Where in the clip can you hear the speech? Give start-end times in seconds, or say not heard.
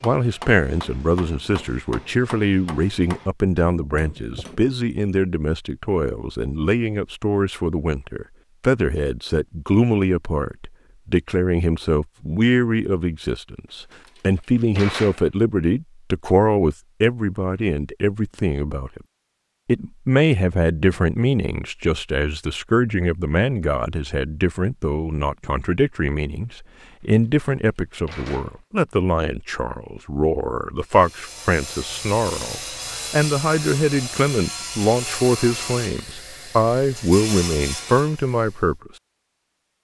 0.0-19.0, 19.6-38.9.